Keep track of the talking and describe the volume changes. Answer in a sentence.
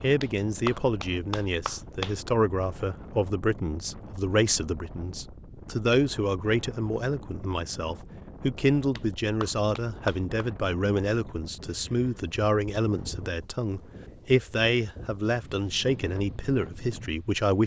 The loudness of the talking stays about the same.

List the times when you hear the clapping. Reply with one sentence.
You can hear the clapping from 0.2 to 2.1 s and from 8.9 to 10.4 s.